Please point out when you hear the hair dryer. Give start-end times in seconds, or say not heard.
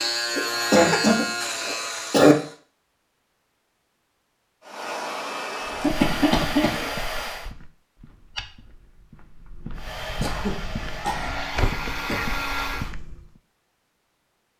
4.6-7.5, 9.8-12.9.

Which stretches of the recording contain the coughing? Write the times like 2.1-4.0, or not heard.
0.3-2.4, 5.8-6.9, 10.2-12.8.